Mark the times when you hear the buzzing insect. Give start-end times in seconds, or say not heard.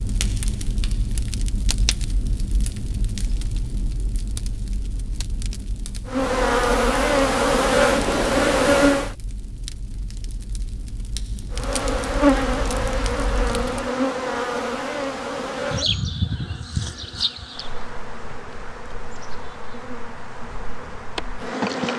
6.0-9.1, 11.5-21.9.